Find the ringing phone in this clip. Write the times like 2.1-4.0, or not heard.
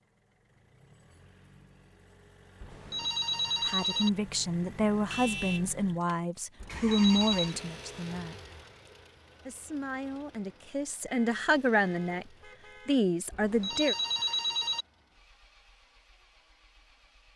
2.6-4.1, 6.6-7.5, 13.3-14.8.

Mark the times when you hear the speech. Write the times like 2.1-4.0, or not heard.
3.6-8.3, 9.4-12.2, 12.8-13.9.